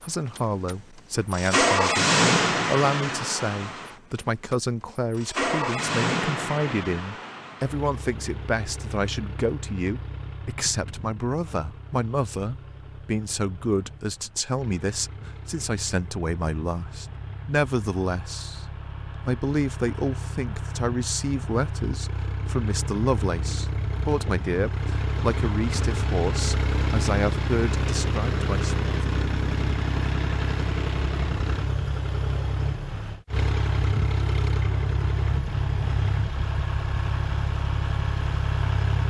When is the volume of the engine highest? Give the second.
2 s.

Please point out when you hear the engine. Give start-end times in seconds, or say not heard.
0.0-39.0.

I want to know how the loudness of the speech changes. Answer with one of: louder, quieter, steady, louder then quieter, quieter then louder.
steady.